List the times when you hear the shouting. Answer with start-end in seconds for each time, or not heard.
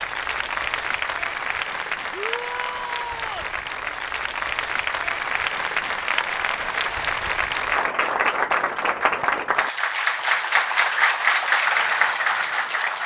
2.1-3.5.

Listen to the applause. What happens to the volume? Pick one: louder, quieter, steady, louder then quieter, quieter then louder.
louder.